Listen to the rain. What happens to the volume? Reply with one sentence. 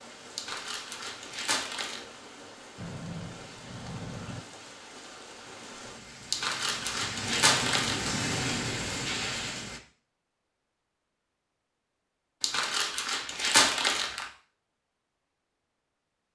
The loudness of the rain goes up.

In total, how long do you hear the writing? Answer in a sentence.
You can hear the writing for 2 seconds altogether.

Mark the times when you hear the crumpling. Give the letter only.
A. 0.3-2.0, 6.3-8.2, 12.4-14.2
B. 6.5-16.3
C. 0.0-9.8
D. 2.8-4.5
A.